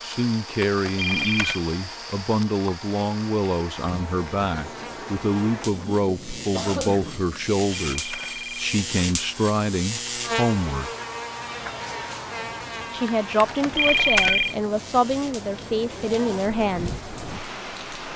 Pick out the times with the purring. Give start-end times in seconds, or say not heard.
not heard.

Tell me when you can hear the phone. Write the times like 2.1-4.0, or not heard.
0.6-1.6, 7.3-8.7, 13.4-14.6.